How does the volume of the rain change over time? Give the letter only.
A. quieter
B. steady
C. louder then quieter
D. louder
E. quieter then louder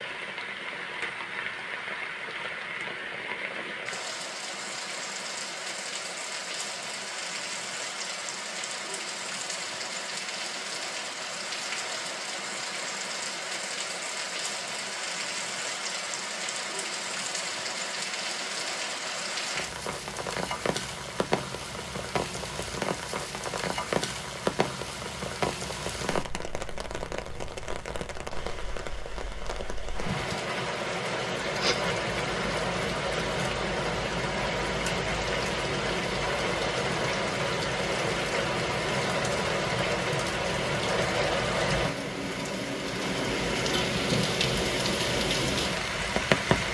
D.